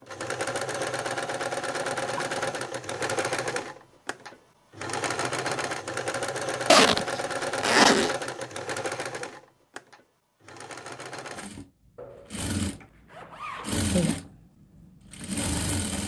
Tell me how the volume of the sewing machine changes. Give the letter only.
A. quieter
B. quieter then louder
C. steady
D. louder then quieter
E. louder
B.